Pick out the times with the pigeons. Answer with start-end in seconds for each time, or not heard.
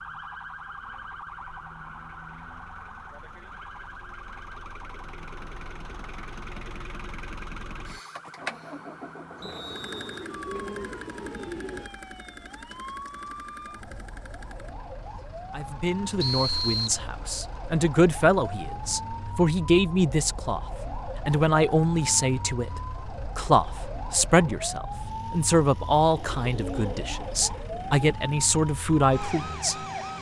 9.7-11.9, 26.1-28.1.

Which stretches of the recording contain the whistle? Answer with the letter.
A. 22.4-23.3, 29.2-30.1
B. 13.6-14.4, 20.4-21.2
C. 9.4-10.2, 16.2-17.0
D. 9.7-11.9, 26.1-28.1
C.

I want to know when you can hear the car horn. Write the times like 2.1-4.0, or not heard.
not heard.